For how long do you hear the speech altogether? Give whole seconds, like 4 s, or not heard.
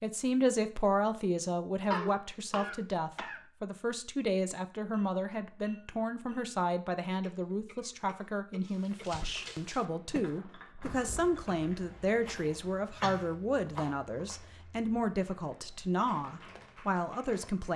18 s.